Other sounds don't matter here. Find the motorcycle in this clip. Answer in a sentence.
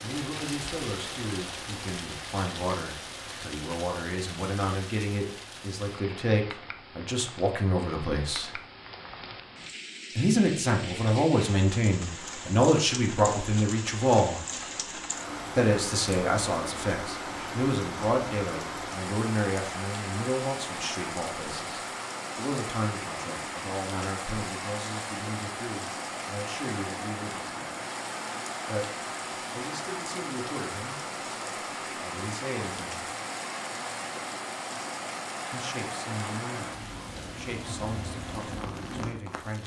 The motorcycle can't be heard in this clip.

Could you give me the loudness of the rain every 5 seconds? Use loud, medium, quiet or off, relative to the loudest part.
loud, medium, loud, loud, loud, loud, loud, loud.